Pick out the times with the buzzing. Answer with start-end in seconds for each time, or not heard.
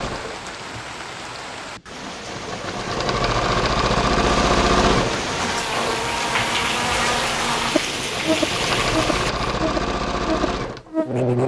5.2-11.4.